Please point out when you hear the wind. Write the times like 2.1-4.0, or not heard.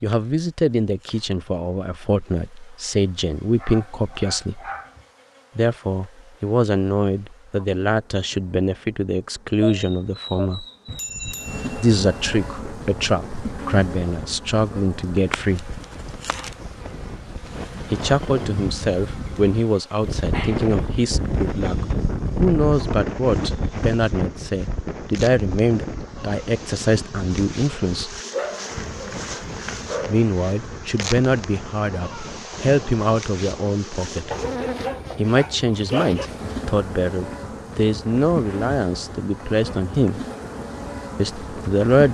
12.4-41.9.